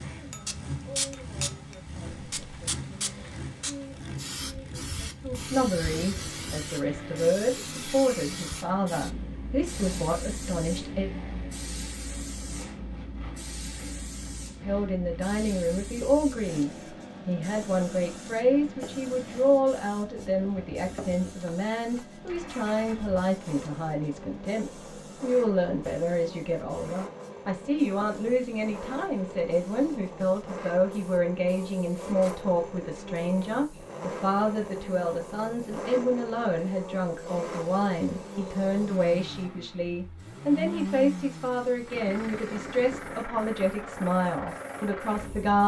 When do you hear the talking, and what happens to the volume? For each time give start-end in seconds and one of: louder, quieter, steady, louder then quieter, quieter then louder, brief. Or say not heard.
0.0-11.1 louder
14.6-45.6 steady.